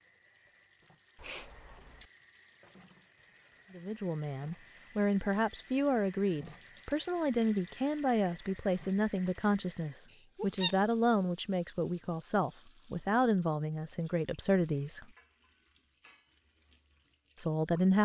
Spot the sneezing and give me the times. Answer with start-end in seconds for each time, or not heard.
1.1-2.1, 10.1-10.8.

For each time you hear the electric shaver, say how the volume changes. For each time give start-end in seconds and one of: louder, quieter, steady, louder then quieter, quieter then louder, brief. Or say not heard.
not heard.